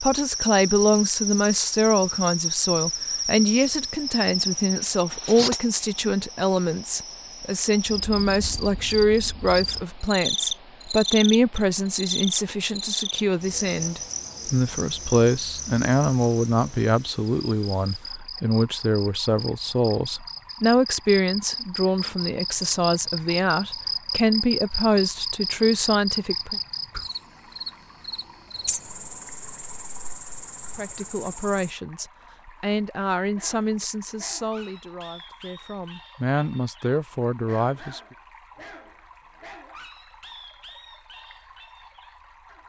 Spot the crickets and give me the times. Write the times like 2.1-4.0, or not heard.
0.0-31.8.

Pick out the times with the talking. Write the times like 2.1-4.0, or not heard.
0.0-26.6, 30.8-38.1.